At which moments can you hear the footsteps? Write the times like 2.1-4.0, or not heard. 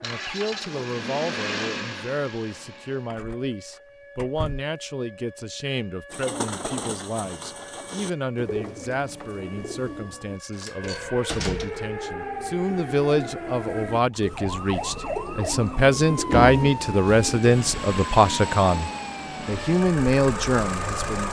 not heard.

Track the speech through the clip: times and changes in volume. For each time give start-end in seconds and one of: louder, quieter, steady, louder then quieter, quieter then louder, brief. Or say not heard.
0.0-21.2 louder.